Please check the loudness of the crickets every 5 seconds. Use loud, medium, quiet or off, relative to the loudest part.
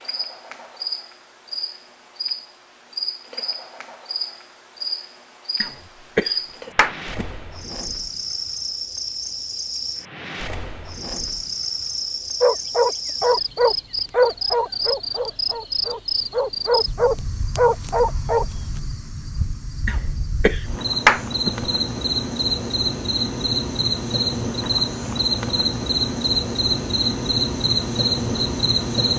medium, medium, medium, medium, loud, loud.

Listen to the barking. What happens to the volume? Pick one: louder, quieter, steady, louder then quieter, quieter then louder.
quieter then louder.